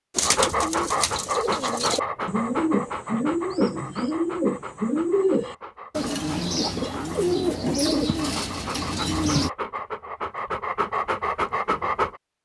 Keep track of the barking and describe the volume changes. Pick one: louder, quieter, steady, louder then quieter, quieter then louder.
quieter then louder.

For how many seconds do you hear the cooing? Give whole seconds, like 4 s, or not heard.
9 s.